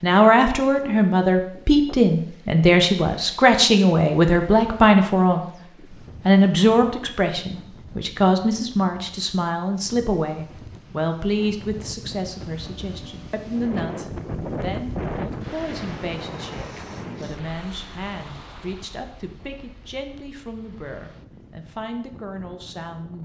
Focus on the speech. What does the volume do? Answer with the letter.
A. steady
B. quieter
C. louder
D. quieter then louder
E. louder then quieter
B.